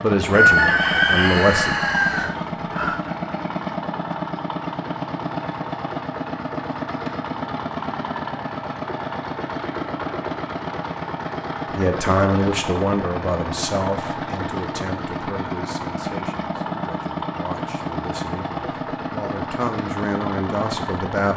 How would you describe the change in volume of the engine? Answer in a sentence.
The loudness of the engine stays about the same.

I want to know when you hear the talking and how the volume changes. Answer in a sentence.
You can hear the talking briefly from 0.0 to 1.8 s; and from 11.8 to 21.3 s, getting quieter then louder.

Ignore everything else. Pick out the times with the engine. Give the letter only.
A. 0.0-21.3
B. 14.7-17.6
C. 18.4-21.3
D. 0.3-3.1
A.